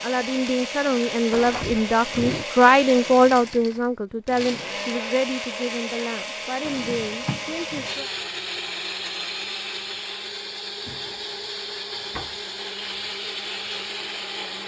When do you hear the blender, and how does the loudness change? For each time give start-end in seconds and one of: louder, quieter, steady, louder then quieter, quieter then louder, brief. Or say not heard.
0.0-14.6 steady.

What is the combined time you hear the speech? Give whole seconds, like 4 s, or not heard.
8 s.